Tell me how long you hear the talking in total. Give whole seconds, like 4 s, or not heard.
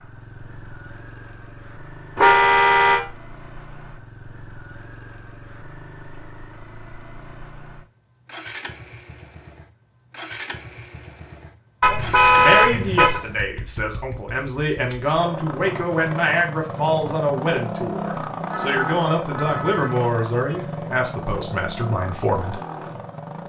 10 s.